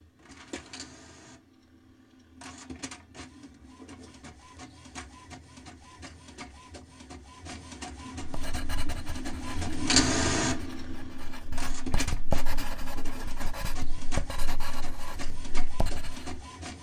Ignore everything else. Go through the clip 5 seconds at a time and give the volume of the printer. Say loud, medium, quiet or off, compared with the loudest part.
quiet, loud, loud, medium.